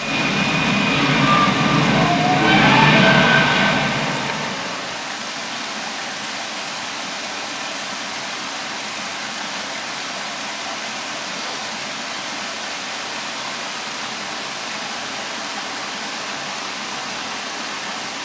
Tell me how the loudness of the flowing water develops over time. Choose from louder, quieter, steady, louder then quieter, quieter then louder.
steady.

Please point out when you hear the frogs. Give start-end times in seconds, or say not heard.
not heard.